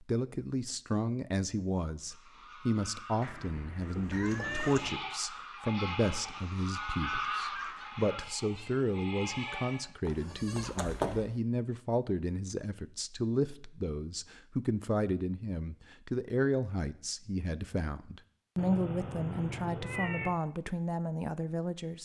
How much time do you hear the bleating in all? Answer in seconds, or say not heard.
7 s.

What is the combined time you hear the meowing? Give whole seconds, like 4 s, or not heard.
5 s.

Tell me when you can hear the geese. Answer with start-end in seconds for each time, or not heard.
2.0-8.2.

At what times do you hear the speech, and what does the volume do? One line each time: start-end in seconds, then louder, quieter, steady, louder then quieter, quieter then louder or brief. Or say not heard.
0.0-21.9 steady.